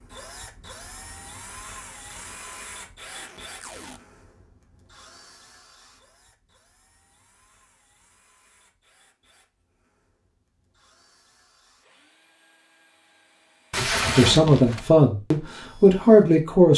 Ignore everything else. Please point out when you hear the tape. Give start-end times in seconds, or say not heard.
2.0-4.0, 13.7-14.9.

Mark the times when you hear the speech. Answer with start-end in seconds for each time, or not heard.
14.1-16.7.